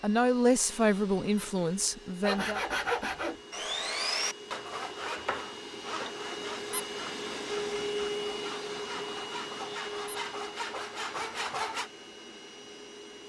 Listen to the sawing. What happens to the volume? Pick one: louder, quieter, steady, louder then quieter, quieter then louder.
quieter then louder.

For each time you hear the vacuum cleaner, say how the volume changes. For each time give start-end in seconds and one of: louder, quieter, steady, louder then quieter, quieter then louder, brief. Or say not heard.
0.0-13.2 louder then quieter.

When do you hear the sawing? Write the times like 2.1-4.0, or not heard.
2.2-11.9.